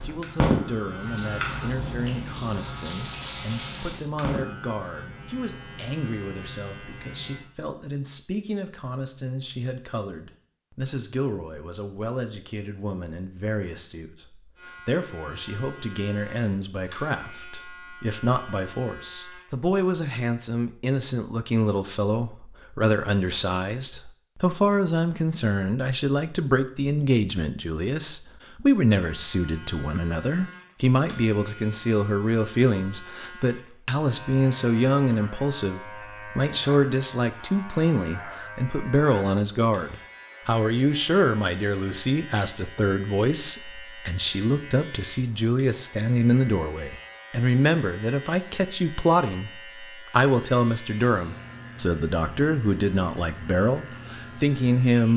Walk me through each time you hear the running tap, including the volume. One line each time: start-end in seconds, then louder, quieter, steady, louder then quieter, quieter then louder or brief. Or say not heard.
0.0-4.4 quieter then louder.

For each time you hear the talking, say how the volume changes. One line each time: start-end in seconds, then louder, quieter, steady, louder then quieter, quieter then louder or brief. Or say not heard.
0.0-55.1 louder.